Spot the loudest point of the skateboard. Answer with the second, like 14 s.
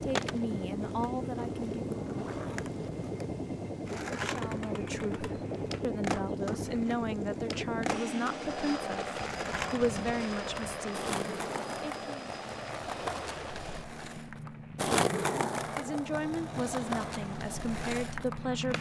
15 s.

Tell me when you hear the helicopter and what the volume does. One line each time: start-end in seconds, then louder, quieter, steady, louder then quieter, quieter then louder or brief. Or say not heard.
0.0-18.7 quieter.